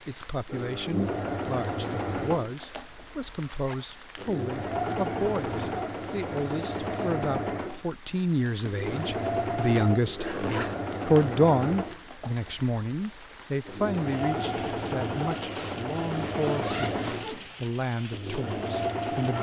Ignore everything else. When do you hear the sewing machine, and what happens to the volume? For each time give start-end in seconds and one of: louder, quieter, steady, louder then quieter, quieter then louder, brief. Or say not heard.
0.0-19.3 steady.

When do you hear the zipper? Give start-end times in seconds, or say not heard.
3.5-4.0, 10.1-10.8, 15.3-17.5.